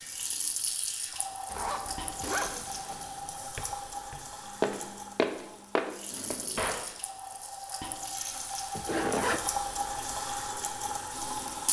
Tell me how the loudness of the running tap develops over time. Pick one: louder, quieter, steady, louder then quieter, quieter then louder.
quieter then louder.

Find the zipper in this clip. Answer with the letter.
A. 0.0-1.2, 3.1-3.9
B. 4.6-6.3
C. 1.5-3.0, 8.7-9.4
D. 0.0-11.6
C.